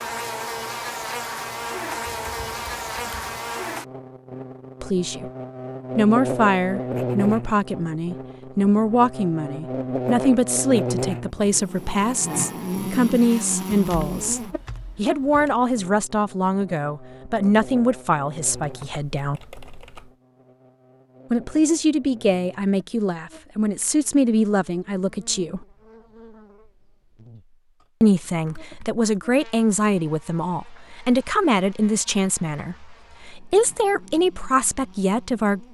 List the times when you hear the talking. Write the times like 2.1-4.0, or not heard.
4.8-5.3, 6.0-19.4, 21.3-25.6, 28.0-35.6.